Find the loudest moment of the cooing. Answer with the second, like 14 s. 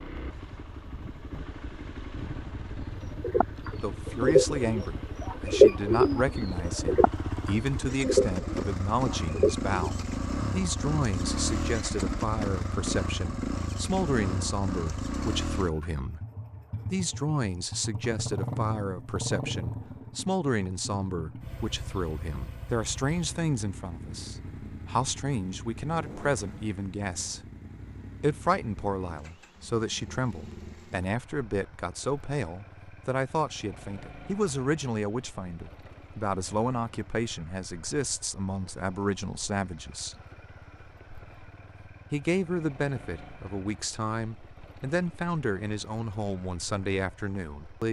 6 s.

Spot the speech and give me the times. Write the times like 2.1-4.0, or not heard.
3.8-16.2, 16.9-27.4, 28.2-40.1, 42.1-47.8.